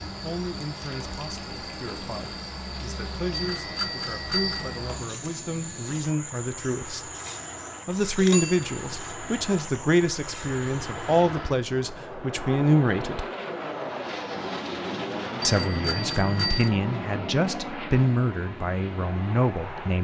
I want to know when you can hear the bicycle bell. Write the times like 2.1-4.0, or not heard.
3.3-4.8, 8.2-8.8, 15.4-16.8.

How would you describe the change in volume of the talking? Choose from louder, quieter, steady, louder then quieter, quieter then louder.
louder.